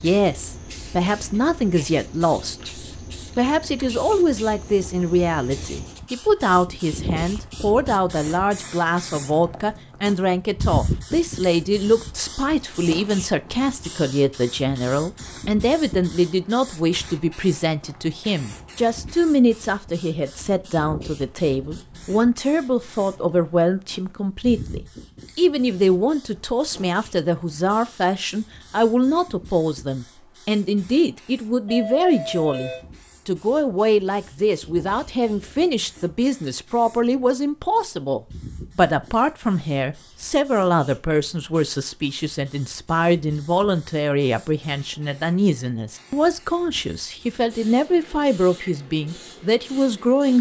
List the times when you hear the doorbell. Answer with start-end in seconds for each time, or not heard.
31.6-32.9.